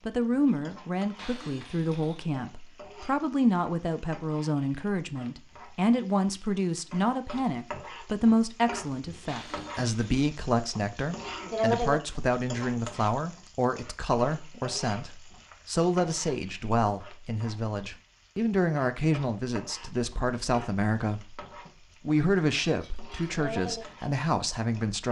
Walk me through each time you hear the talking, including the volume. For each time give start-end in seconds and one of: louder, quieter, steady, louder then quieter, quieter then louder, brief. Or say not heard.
0.1-21.4 steady
22.1-25.0 brief.